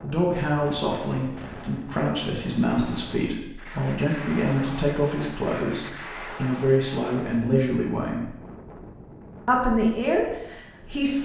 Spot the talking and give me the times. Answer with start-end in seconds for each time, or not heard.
0.0-8.3, 9.4-11.1.